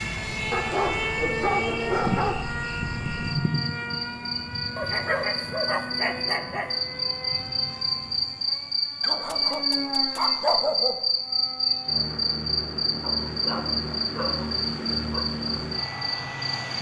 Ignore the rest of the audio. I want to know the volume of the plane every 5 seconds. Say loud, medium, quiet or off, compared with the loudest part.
loud, medium, medium, loud.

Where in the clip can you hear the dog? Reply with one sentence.
You can hear the dog from 0.5 to 2.5 s, from 4.8 to 6.7 s, from 9.0 to 11.0 s and from 13.0 to 15.2 s.